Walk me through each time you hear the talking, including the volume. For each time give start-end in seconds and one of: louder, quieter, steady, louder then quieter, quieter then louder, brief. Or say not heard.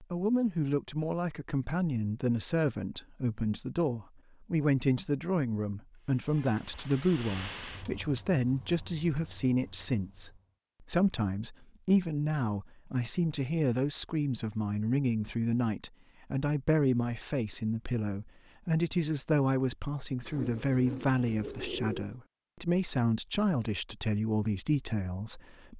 0.0-25.7 steady.